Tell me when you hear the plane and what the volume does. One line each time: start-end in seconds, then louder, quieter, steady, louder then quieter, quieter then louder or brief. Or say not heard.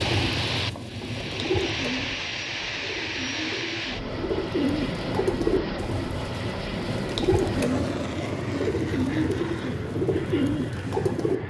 0.0-11.4 steady.